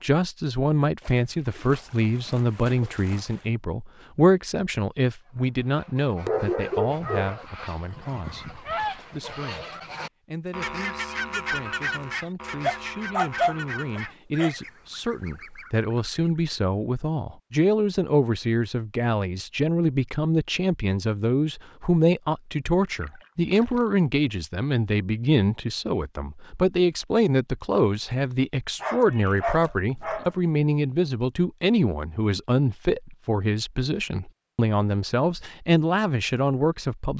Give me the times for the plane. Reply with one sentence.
You can't hear the plane here.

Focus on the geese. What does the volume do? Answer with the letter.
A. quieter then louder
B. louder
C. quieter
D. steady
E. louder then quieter
E.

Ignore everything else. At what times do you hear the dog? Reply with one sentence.
The dog can be heard from 6.2 to 7.3 s, from 12.6 to 14.5 s and from 28.8 to 30.3 s.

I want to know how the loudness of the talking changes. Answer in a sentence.
The volume of the talking goes down, then up.